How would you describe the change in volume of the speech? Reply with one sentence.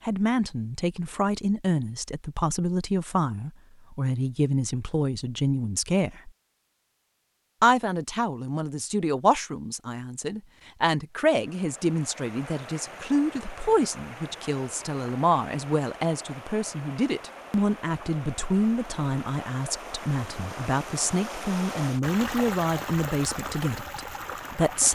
The volume of the speech stays about the same.